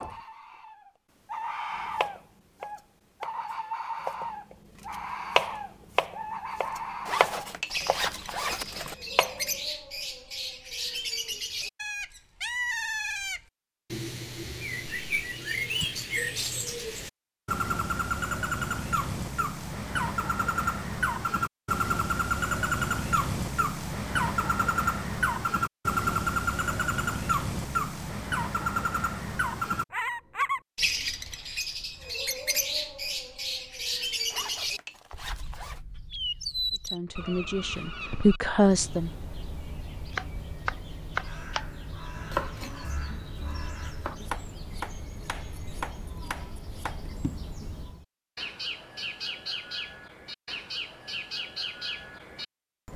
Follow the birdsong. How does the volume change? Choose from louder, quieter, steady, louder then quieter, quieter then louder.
louder then quieter.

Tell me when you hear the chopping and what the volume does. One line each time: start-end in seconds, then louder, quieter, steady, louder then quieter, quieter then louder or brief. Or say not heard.
2.0-9.4 louder then quieter
40.1-47.6 quieter.